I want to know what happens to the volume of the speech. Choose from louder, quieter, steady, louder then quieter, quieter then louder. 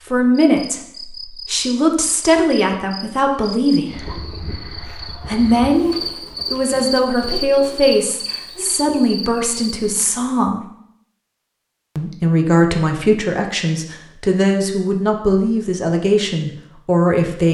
steady.